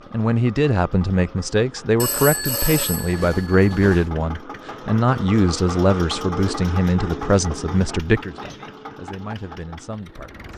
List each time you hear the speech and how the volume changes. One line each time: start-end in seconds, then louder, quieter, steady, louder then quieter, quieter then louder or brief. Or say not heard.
0.1-10.5 quieter.